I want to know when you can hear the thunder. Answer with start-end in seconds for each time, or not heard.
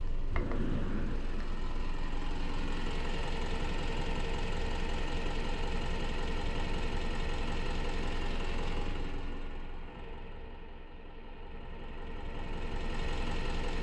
0.3-1.8.